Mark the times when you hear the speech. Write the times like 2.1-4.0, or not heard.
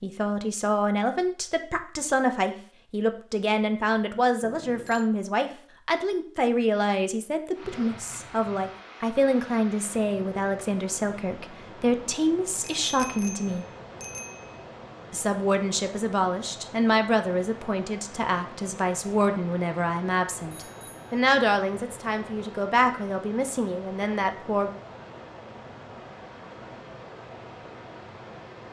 0.0-13.7, 15.1-24.7.